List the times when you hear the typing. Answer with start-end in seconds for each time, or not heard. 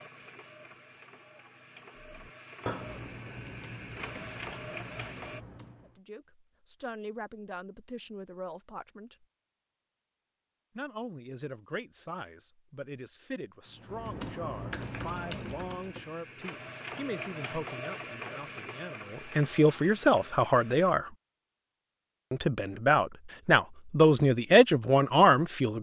2.0-6.0, 13.7-16.1.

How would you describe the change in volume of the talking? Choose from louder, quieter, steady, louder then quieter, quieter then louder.
louder.